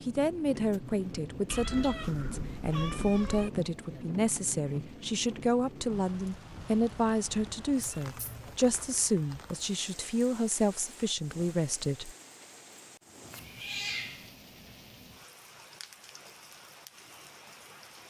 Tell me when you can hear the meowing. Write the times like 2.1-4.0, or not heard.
1.4-3.5, 7.8-8.6, 13.3-14.3.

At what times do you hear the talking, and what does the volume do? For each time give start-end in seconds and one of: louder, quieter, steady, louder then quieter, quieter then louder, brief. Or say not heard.
0.0-12.1 steady.